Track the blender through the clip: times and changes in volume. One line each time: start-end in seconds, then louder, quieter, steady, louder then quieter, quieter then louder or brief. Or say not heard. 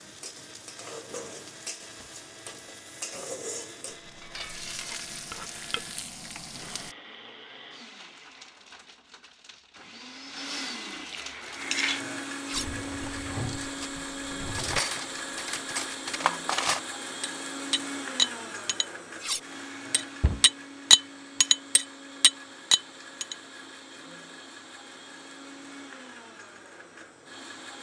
0.0-27.7 louder then quieter.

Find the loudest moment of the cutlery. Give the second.
21 s.